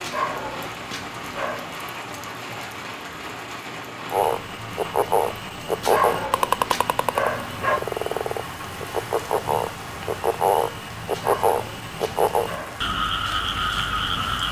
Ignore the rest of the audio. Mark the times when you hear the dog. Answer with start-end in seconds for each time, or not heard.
0.0-1.8, 5.8-7.8, 11.1-12.9.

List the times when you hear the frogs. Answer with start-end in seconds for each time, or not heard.
4.1-14.4.